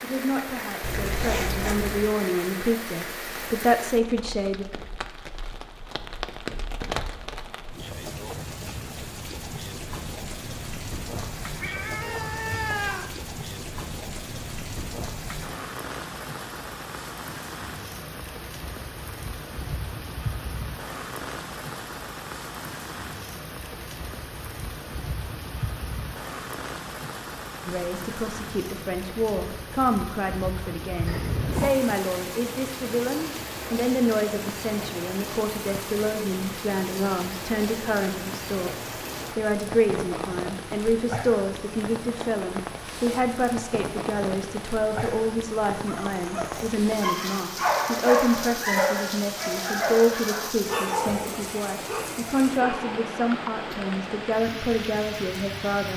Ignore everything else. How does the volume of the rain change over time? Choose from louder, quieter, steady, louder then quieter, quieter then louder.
steady.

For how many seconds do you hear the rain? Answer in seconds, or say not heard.
56 s.